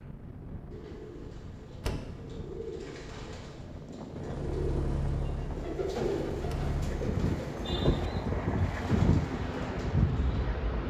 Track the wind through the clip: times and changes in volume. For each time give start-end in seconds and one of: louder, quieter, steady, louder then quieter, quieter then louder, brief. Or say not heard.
0.0-10.8 louder.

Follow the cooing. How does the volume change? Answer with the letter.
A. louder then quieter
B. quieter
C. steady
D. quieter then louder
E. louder
A.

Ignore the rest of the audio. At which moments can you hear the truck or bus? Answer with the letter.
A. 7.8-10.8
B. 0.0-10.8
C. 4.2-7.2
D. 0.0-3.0
C.